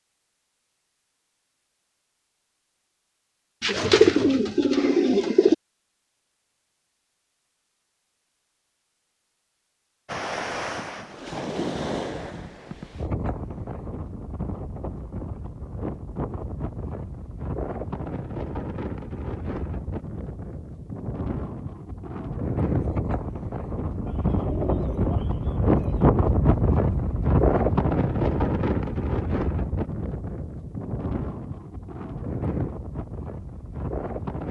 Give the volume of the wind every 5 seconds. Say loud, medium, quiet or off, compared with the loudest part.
off, off, medium, medium, medium, loud, medium.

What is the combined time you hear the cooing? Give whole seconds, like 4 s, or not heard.
4 s.